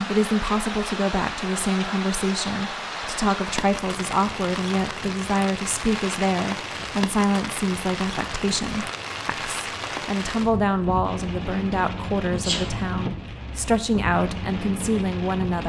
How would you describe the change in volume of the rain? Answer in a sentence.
The volume of the rain stays about the same.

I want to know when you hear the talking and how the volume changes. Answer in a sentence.
You can hear the talking from 0.0 to 15.6 s, at a steady volume.